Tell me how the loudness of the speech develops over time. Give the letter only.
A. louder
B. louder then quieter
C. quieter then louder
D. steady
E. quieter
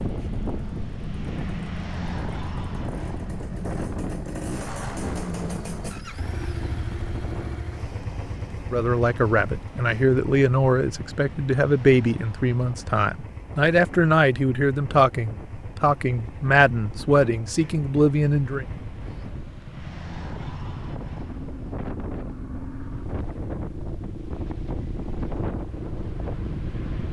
D.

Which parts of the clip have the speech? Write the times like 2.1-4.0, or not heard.
8.7-18.6.